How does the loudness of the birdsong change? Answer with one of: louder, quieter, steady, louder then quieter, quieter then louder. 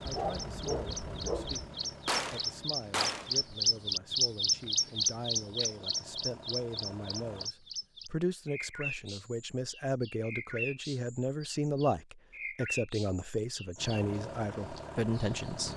louder then quieter.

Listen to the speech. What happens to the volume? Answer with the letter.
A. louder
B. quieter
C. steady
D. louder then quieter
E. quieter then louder
A.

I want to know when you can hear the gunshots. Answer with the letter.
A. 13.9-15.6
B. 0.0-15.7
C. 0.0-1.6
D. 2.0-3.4
D.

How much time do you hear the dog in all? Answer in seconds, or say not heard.
2 s.